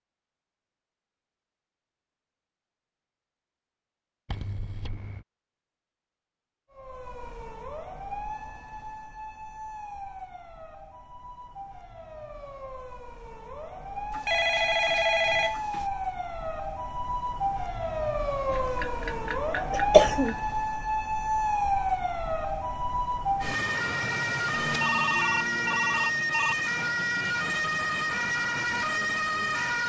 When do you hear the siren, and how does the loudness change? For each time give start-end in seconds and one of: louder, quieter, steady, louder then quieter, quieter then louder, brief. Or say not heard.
6.7-29.8 louder.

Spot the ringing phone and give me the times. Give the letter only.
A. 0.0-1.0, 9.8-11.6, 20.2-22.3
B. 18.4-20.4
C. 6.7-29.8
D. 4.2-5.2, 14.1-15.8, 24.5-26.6
D.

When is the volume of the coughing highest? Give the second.
20 s.